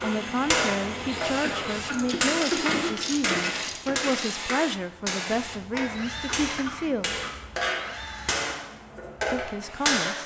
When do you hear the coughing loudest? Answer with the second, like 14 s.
3 s.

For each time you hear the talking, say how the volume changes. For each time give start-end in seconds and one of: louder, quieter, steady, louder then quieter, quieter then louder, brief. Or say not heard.
0.0-7.1 steady
9.3-10.2 brief.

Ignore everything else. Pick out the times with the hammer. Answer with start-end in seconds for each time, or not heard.
0.0-10.2.